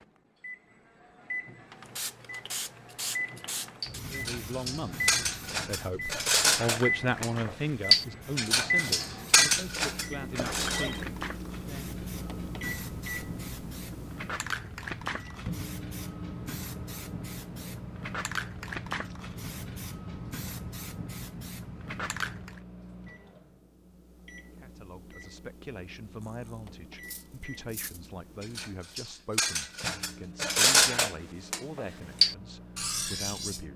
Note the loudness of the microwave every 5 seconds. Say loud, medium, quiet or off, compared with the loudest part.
medium, loud, medium, medium, quiet, quiet, quiet.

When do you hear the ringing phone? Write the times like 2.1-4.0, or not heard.
10.3-11.1.